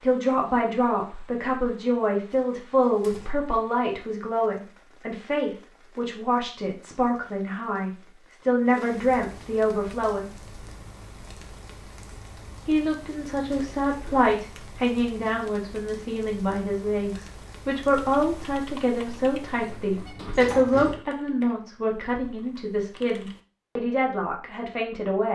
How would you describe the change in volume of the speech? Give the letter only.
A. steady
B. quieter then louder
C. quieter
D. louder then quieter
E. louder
A.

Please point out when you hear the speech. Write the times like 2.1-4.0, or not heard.
0.0-10.3, 12.7-25.2.